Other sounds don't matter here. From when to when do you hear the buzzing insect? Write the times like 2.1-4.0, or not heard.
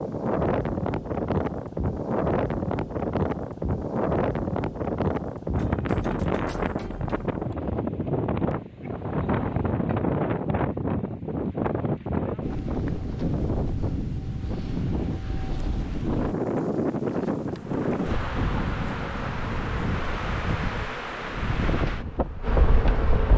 17.4-23.3.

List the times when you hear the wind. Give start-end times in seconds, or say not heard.
0.0-23.3.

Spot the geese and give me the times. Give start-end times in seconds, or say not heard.
not heard.